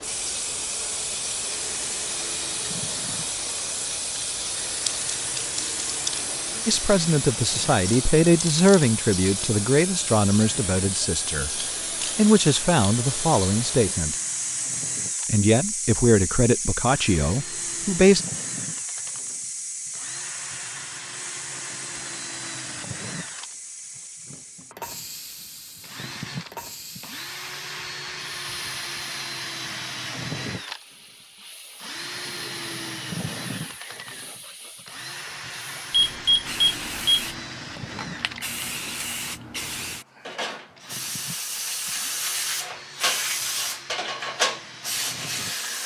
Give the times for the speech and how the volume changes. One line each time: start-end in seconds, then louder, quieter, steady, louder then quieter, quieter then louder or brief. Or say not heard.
6.7-14.2 steady
15.2-18.2 brief.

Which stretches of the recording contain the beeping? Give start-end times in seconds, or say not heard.
35.9-37.2.